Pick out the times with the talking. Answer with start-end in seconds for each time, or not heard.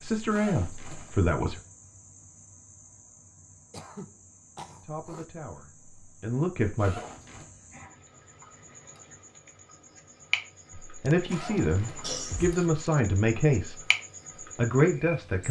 0.0-1.6, 4.8-7.0, 10.7-13.8, 14.6-15.4.